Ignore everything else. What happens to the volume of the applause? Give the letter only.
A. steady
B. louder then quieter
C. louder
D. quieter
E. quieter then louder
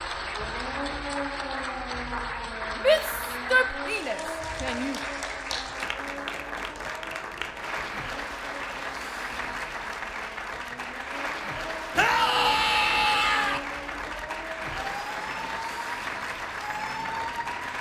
A.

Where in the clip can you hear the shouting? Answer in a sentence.
The shouting can be heard from 2.8 to 5.0 s and from 11.9 to 13.6 s.